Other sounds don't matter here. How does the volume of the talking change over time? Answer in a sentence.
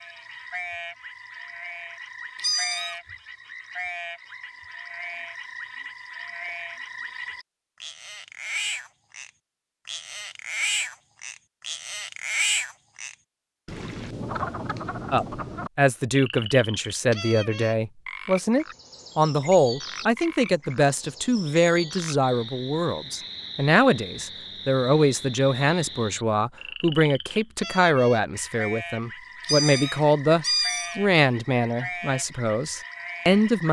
The loudness of the talking stays about the same.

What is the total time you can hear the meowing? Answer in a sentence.
You can hear the meowing for 2 seconds altogether.